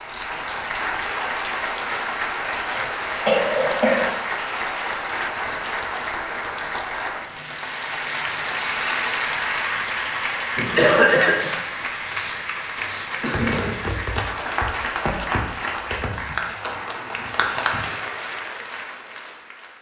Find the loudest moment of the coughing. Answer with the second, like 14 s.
11 s.